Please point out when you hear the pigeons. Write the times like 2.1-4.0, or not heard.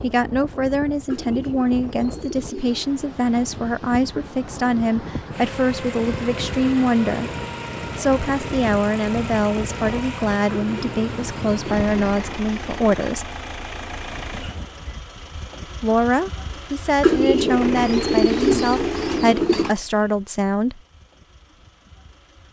1.1-3.0, 10.5-12.9, 17.0-19.8.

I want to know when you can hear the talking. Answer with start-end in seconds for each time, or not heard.
0.0-7.3, 8.0-13.2, 15.8-20.8.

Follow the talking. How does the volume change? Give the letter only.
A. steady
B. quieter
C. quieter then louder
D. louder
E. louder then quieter
A.